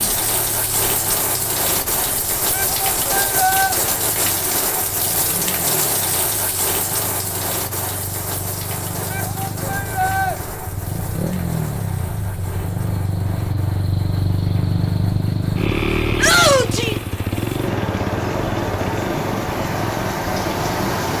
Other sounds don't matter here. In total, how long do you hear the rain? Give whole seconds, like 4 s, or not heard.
21 s.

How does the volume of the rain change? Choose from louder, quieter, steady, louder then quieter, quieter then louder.
quieter then louder.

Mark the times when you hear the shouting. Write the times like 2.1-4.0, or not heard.
2.5-3.8, 9.1-10.3, 16.1-16.9.